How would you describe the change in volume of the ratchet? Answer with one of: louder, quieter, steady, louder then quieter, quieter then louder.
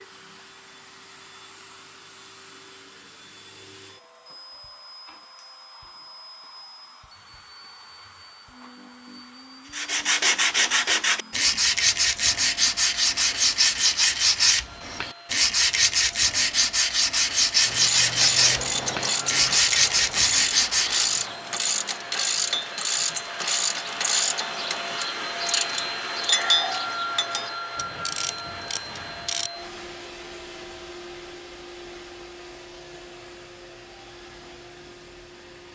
quieter.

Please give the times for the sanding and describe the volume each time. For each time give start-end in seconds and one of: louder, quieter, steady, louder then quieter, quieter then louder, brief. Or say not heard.
9.7-21.3 steady.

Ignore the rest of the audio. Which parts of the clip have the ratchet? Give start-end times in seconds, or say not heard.
17.6-29.5.